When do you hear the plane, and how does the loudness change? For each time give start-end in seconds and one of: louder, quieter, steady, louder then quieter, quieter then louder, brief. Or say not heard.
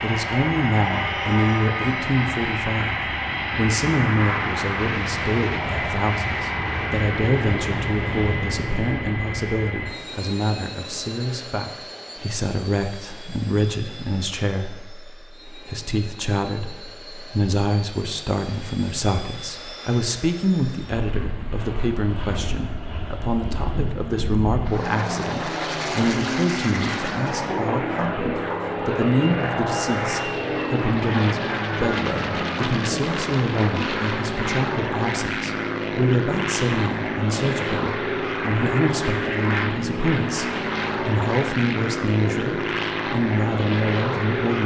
0.0-44.6 quieter then louder.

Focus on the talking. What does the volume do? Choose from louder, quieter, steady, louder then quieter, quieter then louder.
steady.